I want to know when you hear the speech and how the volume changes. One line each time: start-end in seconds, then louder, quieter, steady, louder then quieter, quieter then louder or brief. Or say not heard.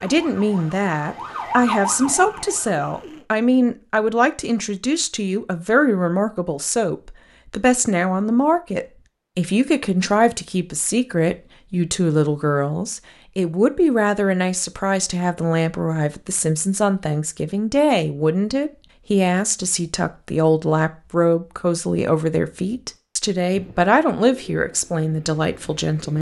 0.0-26.1 steady.